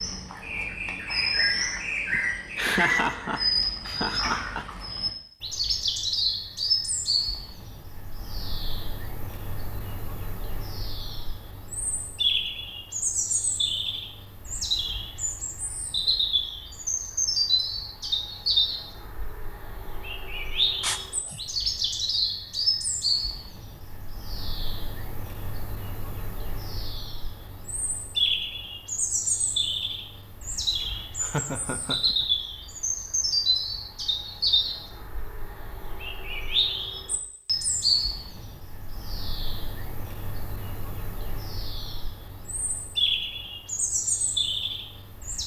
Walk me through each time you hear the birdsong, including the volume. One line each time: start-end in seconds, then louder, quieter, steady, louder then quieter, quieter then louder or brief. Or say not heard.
0.0-45.4 steady.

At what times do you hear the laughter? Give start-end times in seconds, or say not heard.
2.1-4.7, 20.8-21.4, 30.8-32.2.